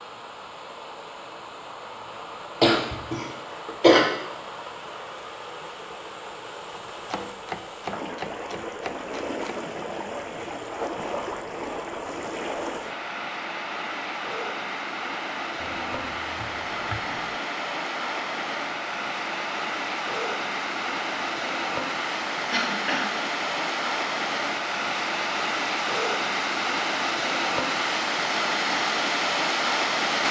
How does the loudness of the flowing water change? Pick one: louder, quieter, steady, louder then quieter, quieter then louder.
louder.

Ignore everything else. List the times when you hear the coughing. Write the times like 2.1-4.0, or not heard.
2.6-4.0, 22.5-23.1.